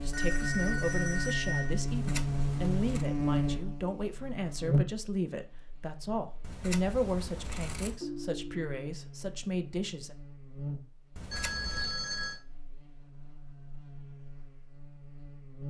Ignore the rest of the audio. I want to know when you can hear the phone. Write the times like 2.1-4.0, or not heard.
0.1-1.8, 8.0-8.8, 11.3-12.4.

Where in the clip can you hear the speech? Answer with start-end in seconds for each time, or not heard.
0.0-10.2.